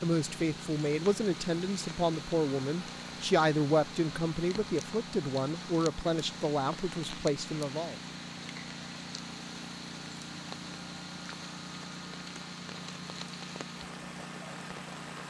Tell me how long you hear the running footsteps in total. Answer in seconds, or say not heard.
not heard.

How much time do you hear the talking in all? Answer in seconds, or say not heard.
8 s.